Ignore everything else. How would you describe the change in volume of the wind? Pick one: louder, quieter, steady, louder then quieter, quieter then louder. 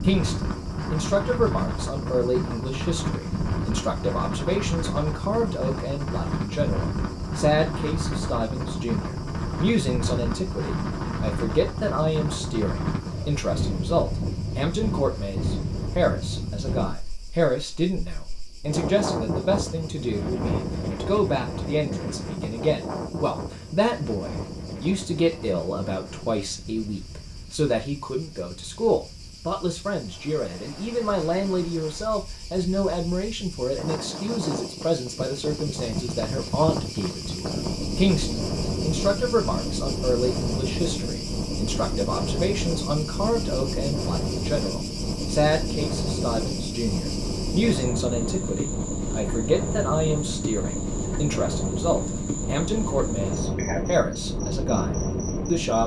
quieter then louder.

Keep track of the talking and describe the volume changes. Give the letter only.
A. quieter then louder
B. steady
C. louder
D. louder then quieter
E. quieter
B.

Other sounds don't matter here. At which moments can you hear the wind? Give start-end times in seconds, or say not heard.
0.0-55.8.